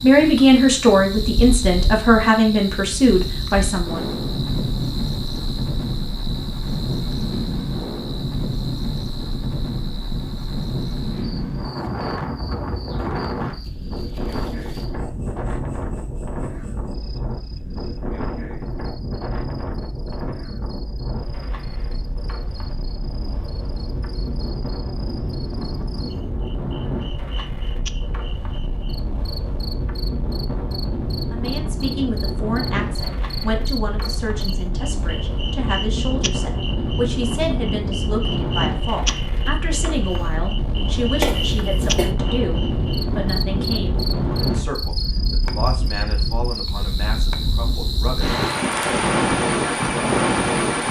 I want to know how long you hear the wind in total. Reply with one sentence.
The wind can be heard for 51 seconds in total.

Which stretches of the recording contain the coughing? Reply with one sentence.
The coughing can be heard from 41.2 to 42.1 s.